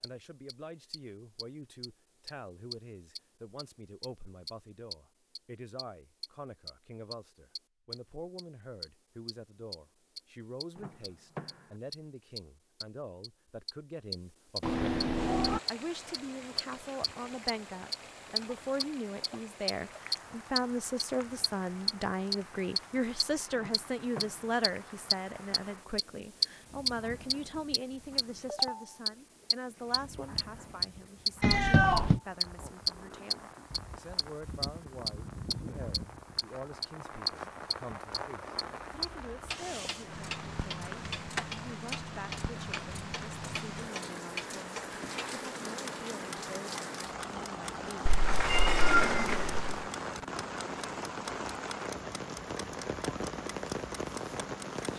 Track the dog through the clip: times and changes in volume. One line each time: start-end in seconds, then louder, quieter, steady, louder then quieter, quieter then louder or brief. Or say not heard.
not heard.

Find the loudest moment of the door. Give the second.
49 s.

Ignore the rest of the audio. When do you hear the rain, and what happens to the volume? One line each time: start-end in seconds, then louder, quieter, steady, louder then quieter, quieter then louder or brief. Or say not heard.
15.1-54.9 louder.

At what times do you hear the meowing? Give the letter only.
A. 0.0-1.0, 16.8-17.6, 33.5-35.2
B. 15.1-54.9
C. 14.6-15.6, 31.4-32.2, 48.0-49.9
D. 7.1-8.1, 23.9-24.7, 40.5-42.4
C.